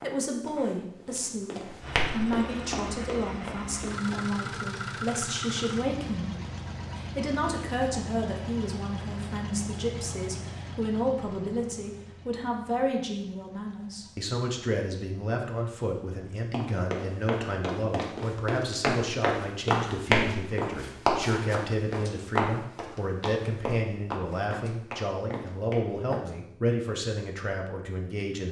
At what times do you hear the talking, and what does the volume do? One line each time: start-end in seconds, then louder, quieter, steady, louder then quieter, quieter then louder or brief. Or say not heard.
0.0-28.4 steady.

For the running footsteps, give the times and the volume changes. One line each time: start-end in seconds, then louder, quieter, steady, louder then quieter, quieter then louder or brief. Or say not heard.
0.0-4.4 louder then quieter
16.4-26.3 louder then quieter.